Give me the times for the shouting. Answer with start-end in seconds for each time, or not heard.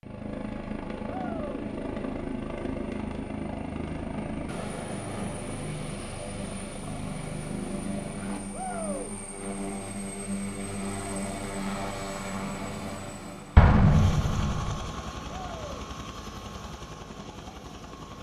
1.1-1.6, 8.5-9.1, 15.3-15.8.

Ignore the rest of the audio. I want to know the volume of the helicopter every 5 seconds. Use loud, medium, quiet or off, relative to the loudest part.
loud, loud, loud, medium.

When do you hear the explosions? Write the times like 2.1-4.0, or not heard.
13.6-14.9.